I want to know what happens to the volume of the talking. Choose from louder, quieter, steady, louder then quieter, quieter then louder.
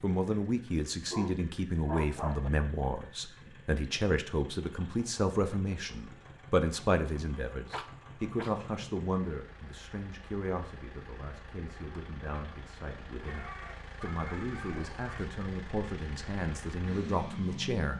quieter then louder.